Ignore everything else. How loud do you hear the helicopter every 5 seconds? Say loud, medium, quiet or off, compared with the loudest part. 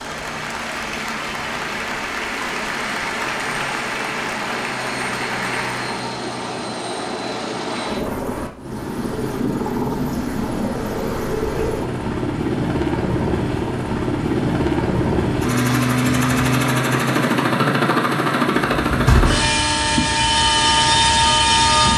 quiet, medium, medium, loud, loud.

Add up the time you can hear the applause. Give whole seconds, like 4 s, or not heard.
6 s.